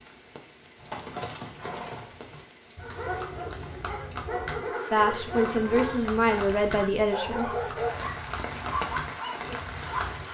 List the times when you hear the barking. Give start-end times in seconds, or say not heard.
2.8-10.0.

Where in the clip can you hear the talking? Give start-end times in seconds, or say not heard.
4.9-7.7.